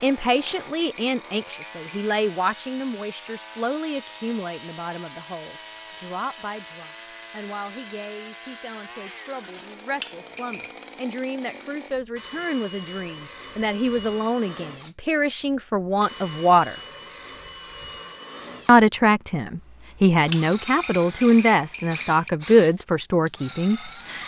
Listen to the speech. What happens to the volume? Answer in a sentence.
The volume of the speech goes down, then up.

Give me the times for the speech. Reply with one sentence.
You can hear the speech from 0.0 to 16.8 s and from 18.6 to 24.2 s.